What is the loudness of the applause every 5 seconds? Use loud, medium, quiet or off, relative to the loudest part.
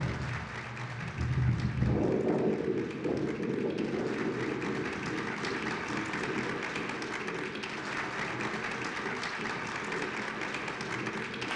medium, loud, loud.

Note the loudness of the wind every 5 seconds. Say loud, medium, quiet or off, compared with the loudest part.
loud, medium, medium.